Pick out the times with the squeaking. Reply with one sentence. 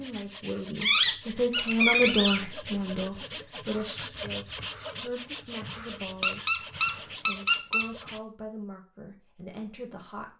The squeaking can be heard from 0.8 to 2.4 s and from 6.2 to 7.8 s.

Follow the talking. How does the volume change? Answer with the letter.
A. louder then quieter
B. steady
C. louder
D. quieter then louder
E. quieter
E.